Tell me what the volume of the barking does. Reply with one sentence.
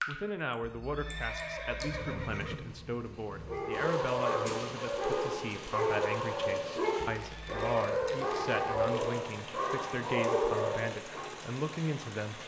The volume of the barking stays about the same.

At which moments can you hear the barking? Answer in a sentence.
The barking can be heard from 3.5 to 11.3 s.